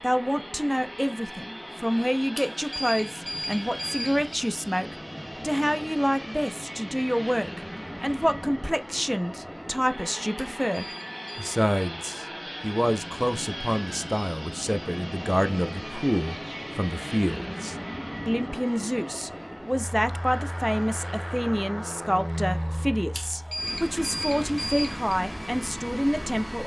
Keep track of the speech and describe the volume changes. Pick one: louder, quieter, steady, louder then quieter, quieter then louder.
steady.